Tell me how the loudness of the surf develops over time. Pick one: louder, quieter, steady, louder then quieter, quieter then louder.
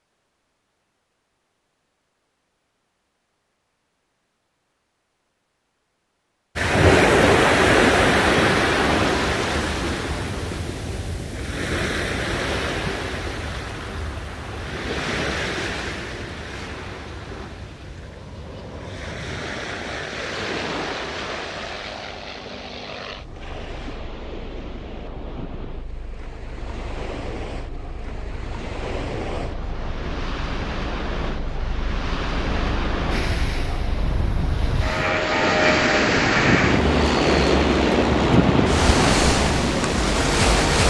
quieter then louder.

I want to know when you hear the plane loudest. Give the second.
36 s.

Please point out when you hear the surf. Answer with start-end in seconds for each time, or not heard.
6.5-40.8.